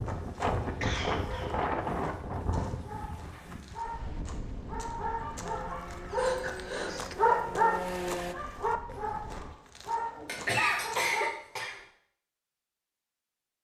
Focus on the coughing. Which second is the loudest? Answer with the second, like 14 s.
11 s.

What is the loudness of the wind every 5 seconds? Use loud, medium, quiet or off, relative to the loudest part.
loud, quiet, off.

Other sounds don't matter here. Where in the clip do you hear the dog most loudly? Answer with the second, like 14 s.
7 s.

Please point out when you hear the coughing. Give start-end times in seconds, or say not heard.
0.8-1.6, 6.2-7.0, 10.2-11.8.